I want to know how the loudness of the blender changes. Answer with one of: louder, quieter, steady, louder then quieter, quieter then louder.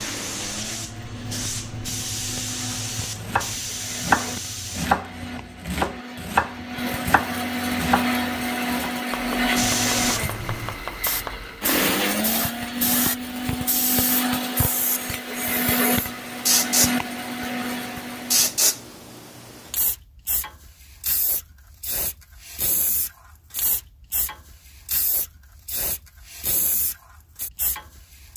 louder.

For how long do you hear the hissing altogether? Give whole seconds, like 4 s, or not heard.
24 s.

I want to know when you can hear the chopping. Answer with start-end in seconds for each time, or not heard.
3.1-11.7.